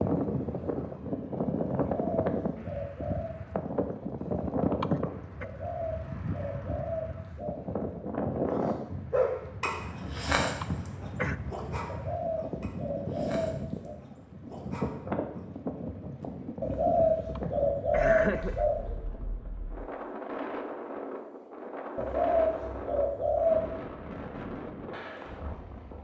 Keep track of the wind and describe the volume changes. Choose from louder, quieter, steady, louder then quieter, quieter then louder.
quieter.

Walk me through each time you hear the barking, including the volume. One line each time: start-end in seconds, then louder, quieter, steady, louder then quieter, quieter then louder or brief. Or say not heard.
8.4-15.4 quieter.